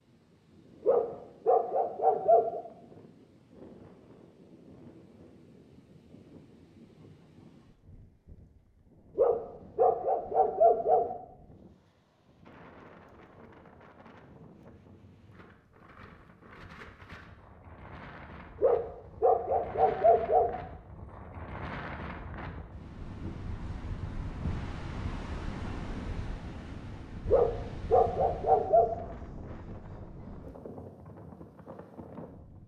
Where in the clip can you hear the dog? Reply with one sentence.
You can hear the dog from 0.8 to 2.6 s, from 9.2 to 11.1 s, from 18.6 to 20.5 s and from 27.3 to 28.9 s.